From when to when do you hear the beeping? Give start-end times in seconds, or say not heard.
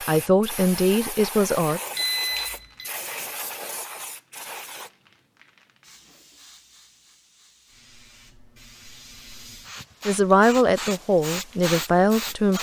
1.9-2.9.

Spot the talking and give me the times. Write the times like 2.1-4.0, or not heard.
0.1-1.8, 10.1-12.5.